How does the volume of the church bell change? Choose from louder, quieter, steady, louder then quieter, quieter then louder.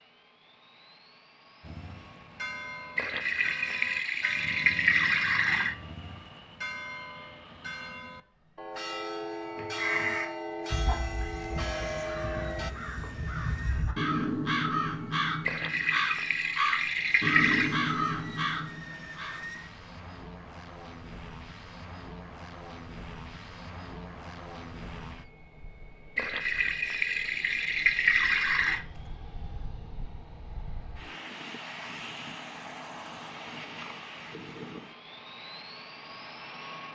louder.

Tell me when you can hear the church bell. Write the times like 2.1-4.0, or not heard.
1.6-12.8.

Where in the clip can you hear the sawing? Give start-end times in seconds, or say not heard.
not heard.